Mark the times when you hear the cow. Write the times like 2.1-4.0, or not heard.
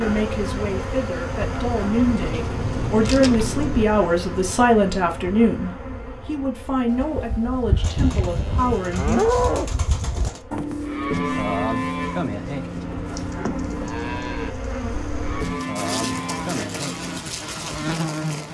6.8-17.2.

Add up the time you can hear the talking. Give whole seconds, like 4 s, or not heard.
9 s.